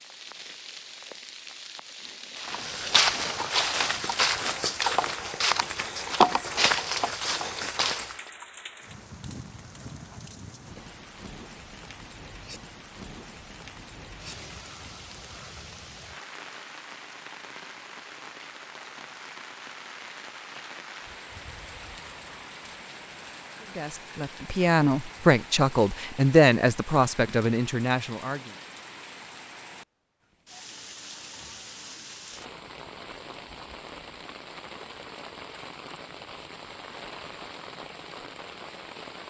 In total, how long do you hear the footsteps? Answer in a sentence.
You can hear the footsteps for 6 seconds altogether.